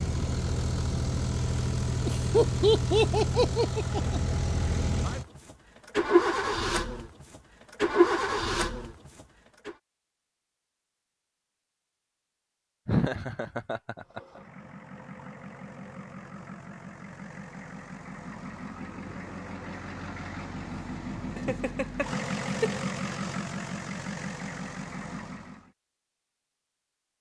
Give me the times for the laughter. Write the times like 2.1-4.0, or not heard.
2.0-4.2, 12.8-14.2, 21.4-22.7.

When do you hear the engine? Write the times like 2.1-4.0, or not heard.
0.0-9.8, 13.9-25.7.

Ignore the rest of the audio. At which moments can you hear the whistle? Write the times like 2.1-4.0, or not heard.
not heard.